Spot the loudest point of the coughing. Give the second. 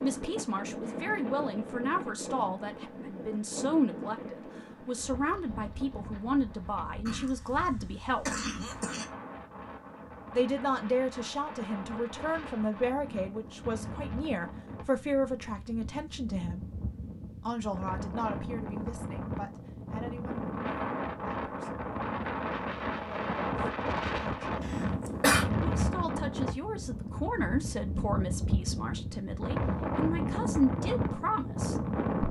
25 s.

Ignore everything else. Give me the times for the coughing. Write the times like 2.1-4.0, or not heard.
7.0-9.1, 24.6-25.4.